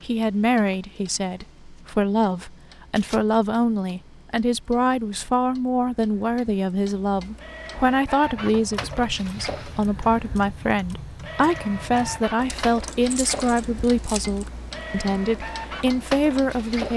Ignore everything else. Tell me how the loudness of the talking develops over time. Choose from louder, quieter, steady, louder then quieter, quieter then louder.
steady.